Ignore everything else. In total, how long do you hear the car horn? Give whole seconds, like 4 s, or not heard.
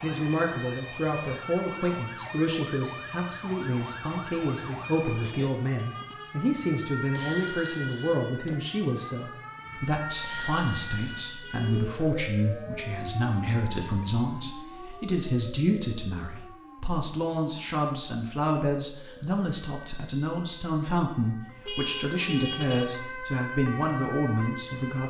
3 s.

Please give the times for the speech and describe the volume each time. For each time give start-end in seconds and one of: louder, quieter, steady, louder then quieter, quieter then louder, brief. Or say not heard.
0.0-25.0 steady.